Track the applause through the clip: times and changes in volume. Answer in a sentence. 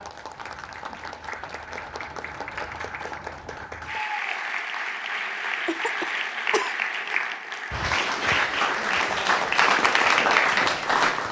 You can hear the applause from 0.0 to 11.2 s, getting louder.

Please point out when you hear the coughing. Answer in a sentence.
The coughing can be heard from 5.7 to 6.8 s.